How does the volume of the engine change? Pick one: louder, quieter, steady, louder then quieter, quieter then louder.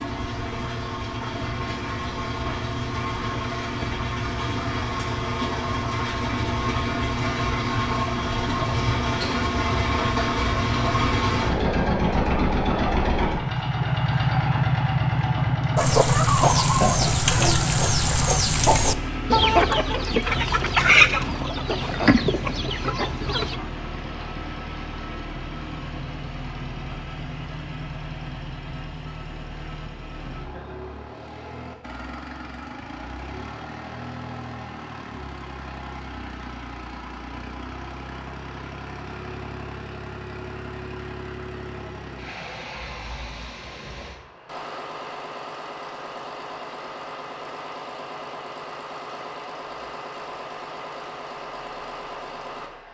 quieter.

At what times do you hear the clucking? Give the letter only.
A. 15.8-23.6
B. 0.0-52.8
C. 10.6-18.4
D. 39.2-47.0
A.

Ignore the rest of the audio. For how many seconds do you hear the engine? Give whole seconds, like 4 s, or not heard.
53 s.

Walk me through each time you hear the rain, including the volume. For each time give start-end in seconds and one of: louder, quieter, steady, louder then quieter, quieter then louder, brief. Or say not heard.
not heard.